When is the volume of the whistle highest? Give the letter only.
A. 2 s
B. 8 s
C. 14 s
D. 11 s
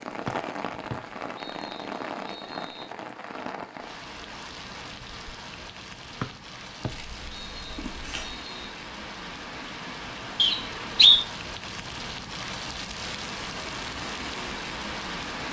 D.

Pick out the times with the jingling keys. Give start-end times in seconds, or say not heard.
6.9-8.3.